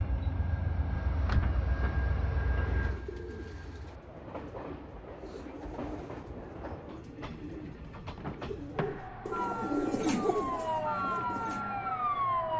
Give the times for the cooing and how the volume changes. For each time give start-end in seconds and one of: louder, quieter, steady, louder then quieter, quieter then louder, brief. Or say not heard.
2.6-11.7 louder.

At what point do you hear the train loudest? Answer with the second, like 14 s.
2 s.